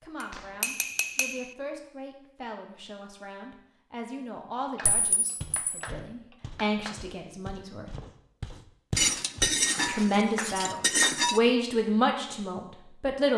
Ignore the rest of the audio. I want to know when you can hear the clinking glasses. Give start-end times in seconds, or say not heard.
0.2-1.6, 4.8-5.9, 8.9-11.4.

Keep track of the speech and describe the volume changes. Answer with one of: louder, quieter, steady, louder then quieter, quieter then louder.
louder.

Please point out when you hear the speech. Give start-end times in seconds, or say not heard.
0.0-8.0, 9.8-13.3.